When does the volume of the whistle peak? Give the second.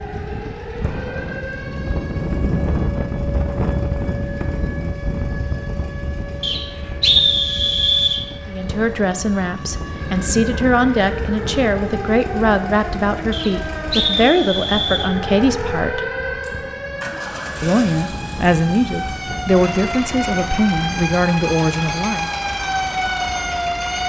7 s.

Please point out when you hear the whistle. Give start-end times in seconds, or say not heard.
6.4-8.2, 13.3-15.1.